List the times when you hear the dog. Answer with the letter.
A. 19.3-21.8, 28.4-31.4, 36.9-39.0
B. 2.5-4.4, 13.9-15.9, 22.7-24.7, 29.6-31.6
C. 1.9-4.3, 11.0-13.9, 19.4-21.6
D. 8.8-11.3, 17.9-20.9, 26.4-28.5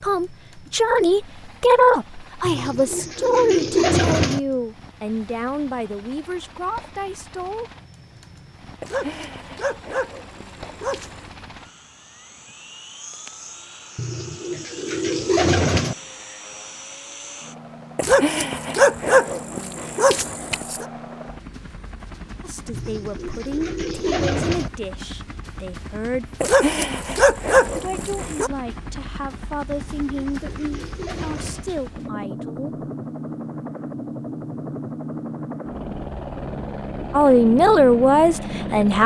D.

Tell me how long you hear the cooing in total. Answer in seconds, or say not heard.
8 s.